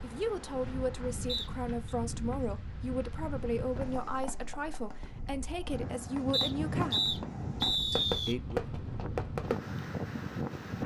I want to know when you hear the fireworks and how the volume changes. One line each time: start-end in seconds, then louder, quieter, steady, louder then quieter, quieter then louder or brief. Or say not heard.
3.7-9.7 louder.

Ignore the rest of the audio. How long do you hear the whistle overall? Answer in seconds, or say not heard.
3 s.